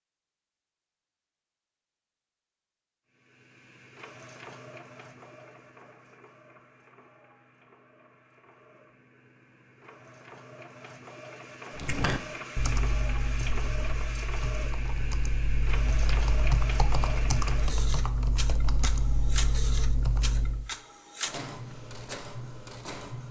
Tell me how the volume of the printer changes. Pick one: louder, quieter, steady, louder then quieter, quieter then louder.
louder.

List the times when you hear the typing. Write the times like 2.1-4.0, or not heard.
11.8-20.7.